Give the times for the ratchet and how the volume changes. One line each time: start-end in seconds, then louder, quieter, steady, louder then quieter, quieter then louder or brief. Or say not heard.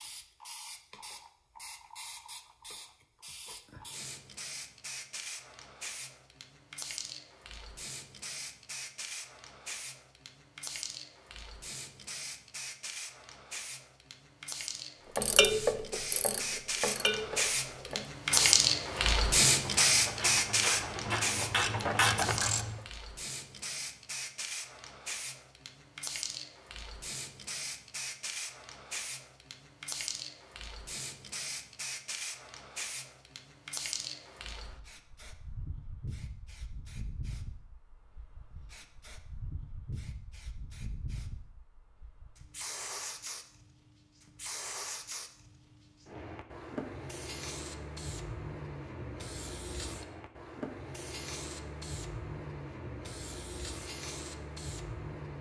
15.2-22.8 quieter then louder.